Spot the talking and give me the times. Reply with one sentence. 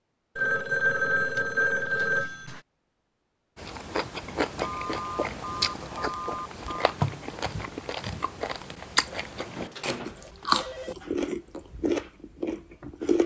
You can't hear the talking here.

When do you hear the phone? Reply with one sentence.
You can hear the phone from 0.3 to 2.6 s, from 4.6 to 7.0 s and from 9.5 to 10.9 s.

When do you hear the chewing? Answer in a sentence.
The chewing can be heard from 3.5 to 13.2 s.